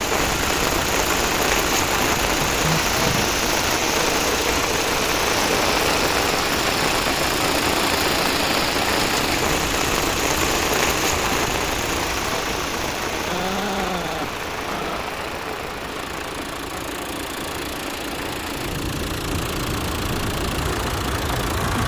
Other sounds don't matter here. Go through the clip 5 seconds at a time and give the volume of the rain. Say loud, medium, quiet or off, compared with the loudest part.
loud, loud, loud, medium, medium.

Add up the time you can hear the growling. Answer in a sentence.
The growling can be heard for 3 seconds in total.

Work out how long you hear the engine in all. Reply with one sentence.
You can hear the engine for 22 seconds altogether.